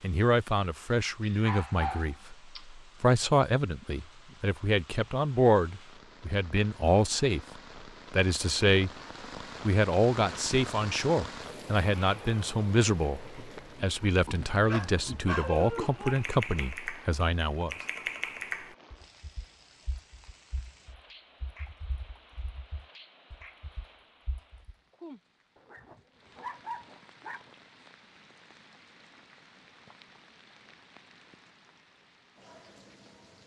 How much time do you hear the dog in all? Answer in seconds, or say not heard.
5 s.